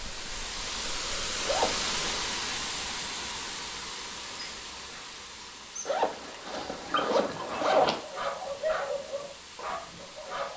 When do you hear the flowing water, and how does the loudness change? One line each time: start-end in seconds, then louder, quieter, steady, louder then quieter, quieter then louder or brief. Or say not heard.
0.0-10.5 quieter.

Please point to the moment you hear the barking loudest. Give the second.
9 s.